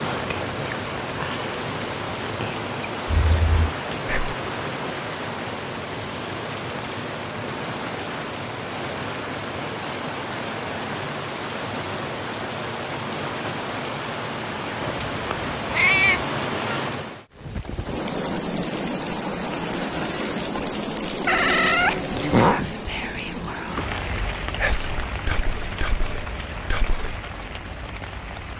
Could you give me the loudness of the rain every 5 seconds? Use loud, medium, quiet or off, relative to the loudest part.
loud, loud, loud, loud, loud, medium.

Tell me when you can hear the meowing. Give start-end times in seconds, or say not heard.
3.0-3.8, 14.8-16.2, 21.2-22.6.